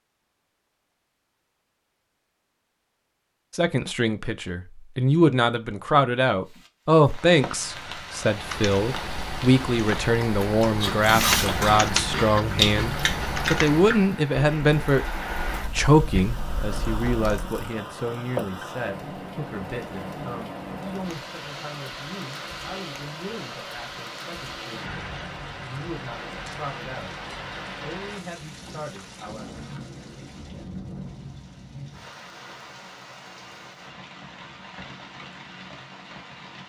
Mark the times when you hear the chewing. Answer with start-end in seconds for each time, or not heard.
10.2-17.8.